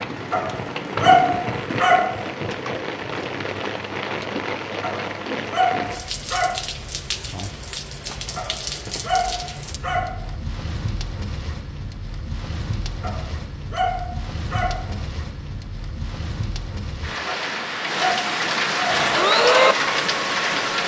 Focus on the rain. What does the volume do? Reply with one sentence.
The volume of the rain goes down, then up.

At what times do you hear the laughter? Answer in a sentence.
You can't hear the laughter here.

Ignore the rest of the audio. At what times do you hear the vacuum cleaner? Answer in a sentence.
You can hear the vacuum cleaner from 18.9 to 20.8 s.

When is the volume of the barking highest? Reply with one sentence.
The volume of the barking peaks at 1 second.